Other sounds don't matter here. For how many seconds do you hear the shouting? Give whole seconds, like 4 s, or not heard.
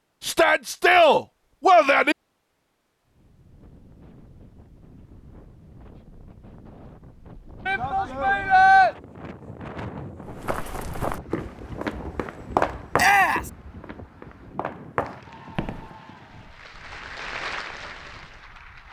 4 s.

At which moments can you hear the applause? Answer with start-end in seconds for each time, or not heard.
15.0-18.8.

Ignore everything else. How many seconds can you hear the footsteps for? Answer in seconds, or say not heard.
6 s.